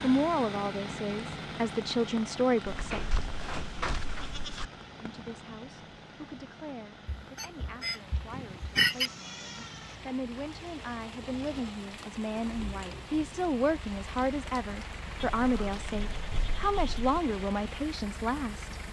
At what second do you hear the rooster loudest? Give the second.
9 s.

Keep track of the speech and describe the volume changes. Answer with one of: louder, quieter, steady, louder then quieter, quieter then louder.
quieter then louder.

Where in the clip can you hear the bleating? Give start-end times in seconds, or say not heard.
2.6-4.7, 8.3-9.9, 15.2-17.2.